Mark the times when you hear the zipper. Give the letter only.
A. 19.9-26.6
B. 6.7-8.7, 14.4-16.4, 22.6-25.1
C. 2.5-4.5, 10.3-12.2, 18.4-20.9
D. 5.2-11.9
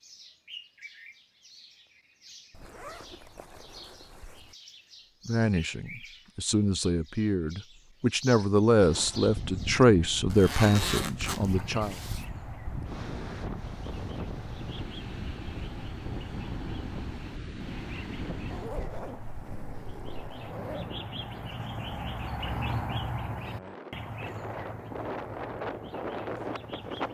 C.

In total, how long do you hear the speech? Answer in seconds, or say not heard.
7 s.